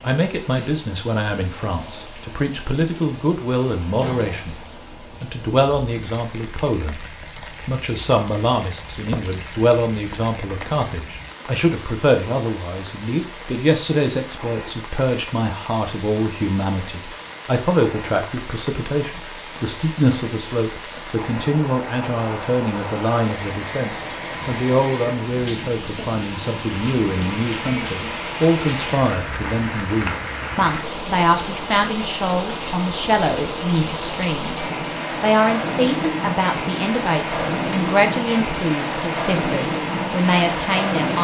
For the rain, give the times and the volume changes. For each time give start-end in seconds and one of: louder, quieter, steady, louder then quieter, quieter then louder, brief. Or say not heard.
0.0-41.1 louder.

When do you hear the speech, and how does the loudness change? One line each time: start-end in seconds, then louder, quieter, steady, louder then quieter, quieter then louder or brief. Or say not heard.
0.0-41.1 steady.